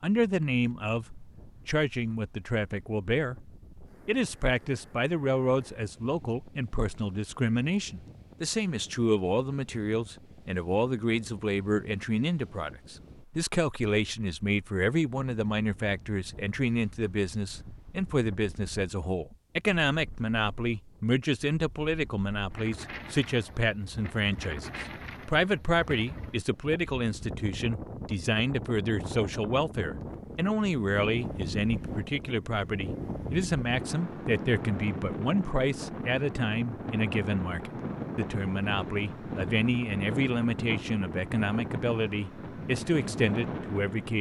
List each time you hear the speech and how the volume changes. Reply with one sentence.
The speech can be heard from 0.0 to 44.1 s, at a steady volume.